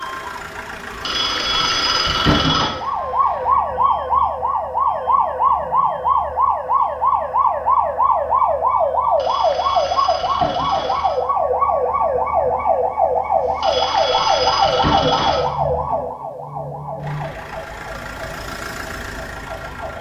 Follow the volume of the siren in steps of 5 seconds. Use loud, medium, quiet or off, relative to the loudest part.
loud, loud, loud, medium.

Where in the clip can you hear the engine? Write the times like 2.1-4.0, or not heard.
0.0-3.6, 16.9-19.9.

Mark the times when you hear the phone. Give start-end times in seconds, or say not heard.
1.0-2.7, 9.2-11.2, 13.6-15.4.